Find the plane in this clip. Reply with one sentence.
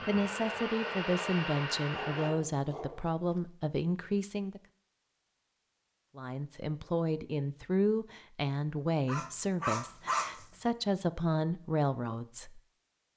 You can hear the plane from 0.0 to 2.3 s.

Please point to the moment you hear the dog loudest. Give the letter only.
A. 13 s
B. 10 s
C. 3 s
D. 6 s
B.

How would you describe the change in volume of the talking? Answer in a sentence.
The volume of the talking stays about the same.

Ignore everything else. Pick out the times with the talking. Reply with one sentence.
You can hear the talking from 0.1 to 4.6 s and from 6.2 to 12.6 s.